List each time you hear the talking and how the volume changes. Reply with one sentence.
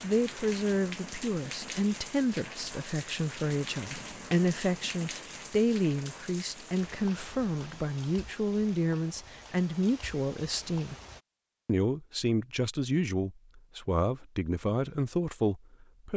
The talking can be heard from 0.0 to 10.9 s, at a steady volume; and from 11.7 to 16.1 s, at a steady volume.